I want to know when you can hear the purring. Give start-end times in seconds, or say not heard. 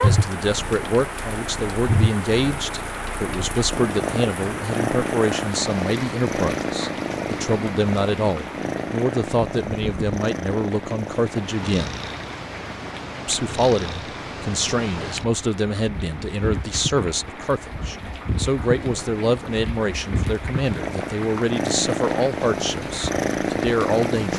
0.0-24.3.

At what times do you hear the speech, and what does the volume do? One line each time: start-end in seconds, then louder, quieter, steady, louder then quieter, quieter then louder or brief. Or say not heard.
0.0-11.9 steady
13.2-24.3 steady.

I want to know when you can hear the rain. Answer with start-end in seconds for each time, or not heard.
0.0-24.3.